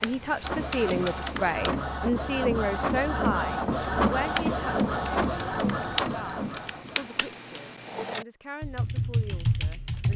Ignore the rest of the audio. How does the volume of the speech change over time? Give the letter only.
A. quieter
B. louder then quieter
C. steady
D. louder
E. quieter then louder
A.